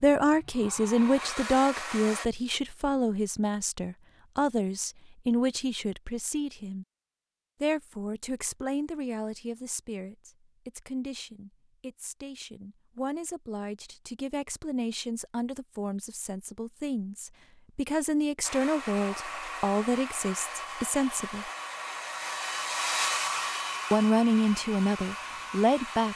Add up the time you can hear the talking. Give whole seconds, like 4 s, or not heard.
23 s.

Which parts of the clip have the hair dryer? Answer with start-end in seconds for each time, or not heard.
0.1-2.3, 18.4-26.1.